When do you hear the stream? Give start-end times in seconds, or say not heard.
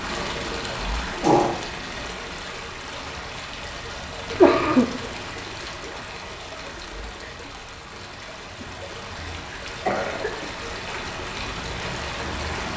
0.0-12.7.